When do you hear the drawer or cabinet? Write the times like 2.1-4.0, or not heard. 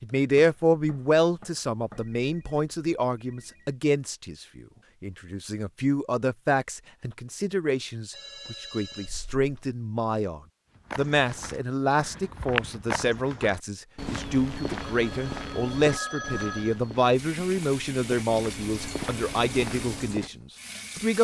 not heard.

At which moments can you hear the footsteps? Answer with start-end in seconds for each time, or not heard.
10.8-20.3.